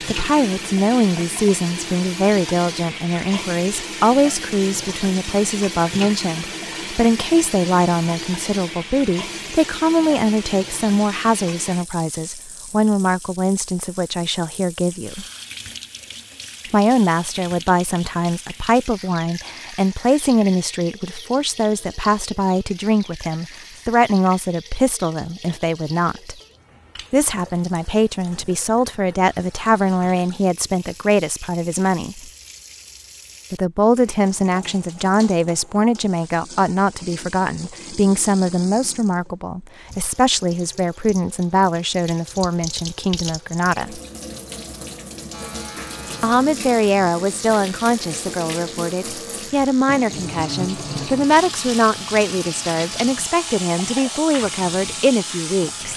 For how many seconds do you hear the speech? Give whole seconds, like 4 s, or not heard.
50 s.